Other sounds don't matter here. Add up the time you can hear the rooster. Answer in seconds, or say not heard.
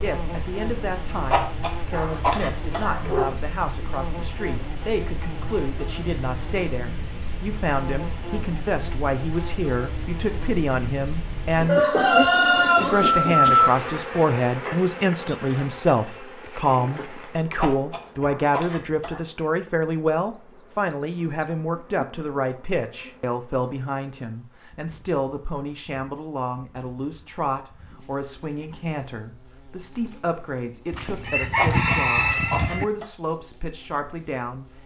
4 s.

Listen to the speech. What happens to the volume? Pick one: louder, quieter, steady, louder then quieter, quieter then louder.
louder then quieter.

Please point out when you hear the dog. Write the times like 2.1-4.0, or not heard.
1.2-3.3, 17.6-19.2, 31.6-33.0.